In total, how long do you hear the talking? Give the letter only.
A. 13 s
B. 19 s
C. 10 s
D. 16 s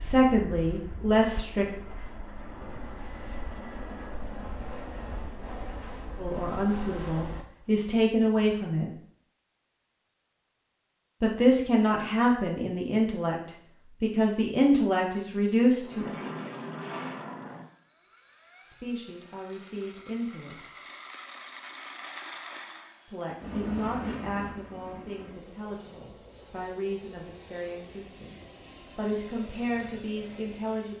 B.